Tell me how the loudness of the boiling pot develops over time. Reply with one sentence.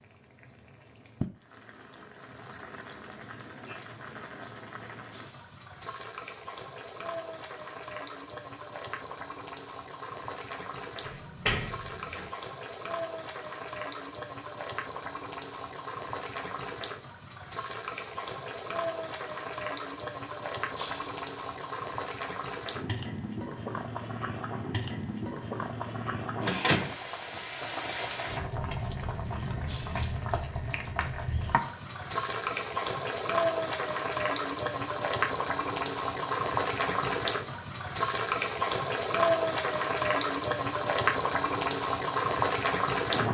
The loudness of the boiling pot goes up.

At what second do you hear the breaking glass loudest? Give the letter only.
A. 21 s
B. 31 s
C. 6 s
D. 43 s
A.